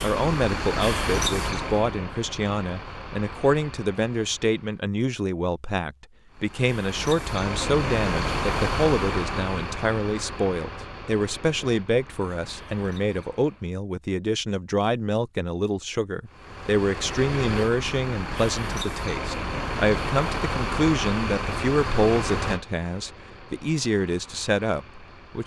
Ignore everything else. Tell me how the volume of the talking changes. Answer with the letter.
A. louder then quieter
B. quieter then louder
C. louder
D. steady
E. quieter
D.